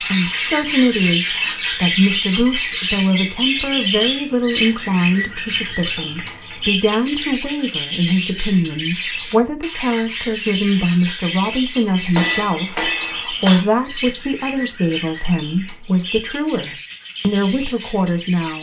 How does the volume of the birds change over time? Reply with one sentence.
The volume of the birds goes down.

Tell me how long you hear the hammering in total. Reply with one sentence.
The hammering can be heard for 3 seconds in total.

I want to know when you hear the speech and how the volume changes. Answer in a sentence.
The speech can be heard from 0.1 to 18.5 s, at a steady volume.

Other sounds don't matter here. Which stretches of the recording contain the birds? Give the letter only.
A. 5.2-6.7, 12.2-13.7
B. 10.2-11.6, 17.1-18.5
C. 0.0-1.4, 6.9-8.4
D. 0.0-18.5
D.